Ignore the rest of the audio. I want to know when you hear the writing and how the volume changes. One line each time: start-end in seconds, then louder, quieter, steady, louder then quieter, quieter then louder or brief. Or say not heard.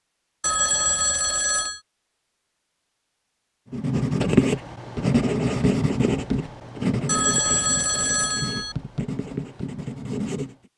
3.7-10.7 quieter.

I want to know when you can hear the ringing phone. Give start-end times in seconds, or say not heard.
0.4-1.8, 7.0-8.8.